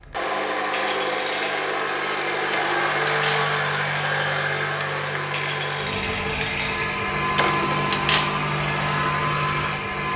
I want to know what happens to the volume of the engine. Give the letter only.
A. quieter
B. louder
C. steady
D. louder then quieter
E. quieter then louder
C.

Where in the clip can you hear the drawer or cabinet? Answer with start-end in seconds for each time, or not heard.
2.5-3.5, 7.3-8.3.